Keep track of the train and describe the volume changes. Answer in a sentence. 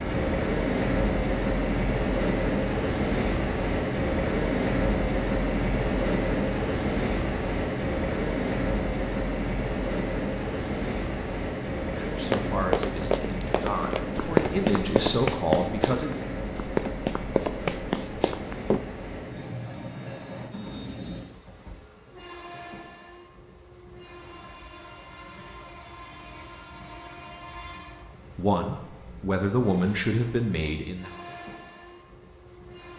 The loudness of the train goes down.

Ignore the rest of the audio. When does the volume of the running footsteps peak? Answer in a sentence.
The volume of the running footsteps peaks at 15 seconds.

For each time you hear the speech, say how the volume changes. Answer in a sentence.
The speech can be heard from 11.9 to 16.2 s, getting quieter then louder; and briefly from 28.4 to 31.1 s.